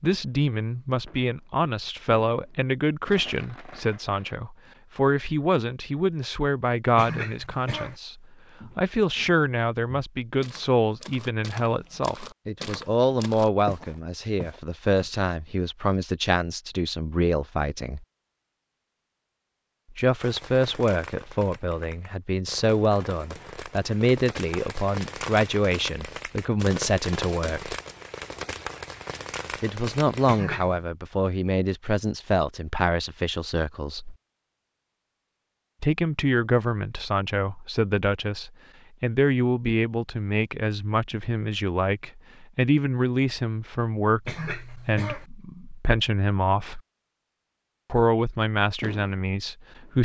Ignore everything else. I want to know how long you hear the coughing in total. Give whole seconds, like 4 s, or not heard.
3 s.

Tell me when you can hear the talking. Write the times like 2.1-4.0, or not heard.
0.0-18.1, 19.9-27.8, 29.6-34.1, 35.8-46.8, 47.9-50.0.